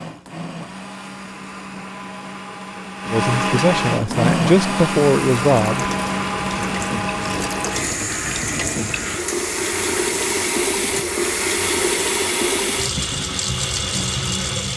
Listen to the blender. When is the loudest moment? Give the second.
4 s.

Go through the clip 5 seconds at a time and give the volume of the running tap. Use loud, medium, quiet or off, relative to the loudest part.
off, medium, loud.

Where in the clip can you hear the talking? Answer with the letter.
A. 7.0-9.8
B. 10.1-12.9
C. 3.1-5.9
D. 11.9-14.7
C.